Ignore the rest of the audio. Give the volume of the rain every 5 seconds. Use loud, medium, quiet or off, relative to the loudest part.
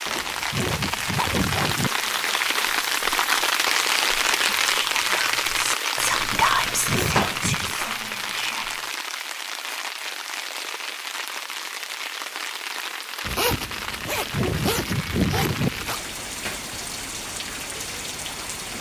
loud, loud, medium, medium.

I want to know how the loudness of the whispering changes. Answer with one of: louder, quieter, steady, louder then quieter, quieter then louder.
louder then quieter.